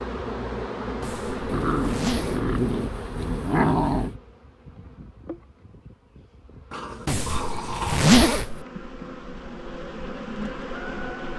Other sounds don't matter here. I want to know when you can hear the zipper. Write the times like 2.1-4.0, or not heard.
1.0-2.5, 7.0-8.7.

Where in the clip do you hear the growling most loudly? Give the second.
4 s.